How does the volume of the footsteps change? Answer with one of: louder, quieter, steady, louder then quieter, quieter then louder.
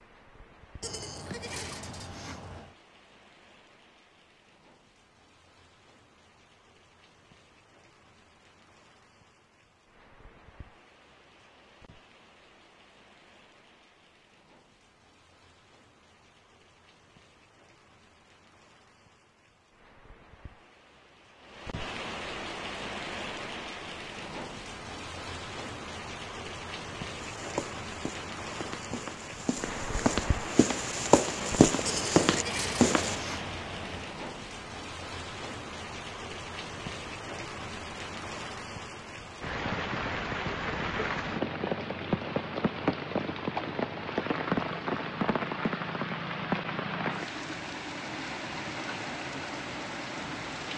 louder.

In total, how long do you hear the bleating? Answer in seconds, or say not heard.
4 s.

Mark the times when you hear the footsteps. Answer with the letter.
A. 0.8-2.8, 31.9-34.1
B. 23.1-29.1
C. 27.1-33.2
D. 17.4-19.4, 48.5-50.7
C.